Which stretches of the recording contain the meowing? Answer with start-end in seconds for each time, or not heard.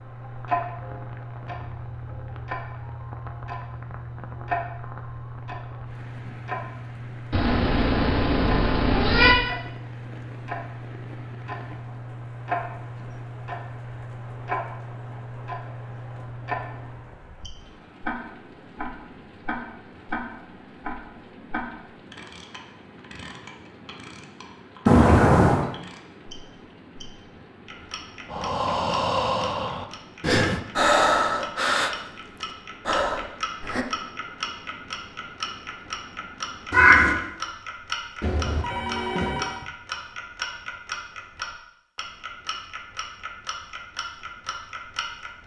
7.3-9.3, 24.9-25.6, 36.7-37.1.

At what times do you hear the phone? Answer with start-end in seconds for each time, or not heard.
38.2-39.7.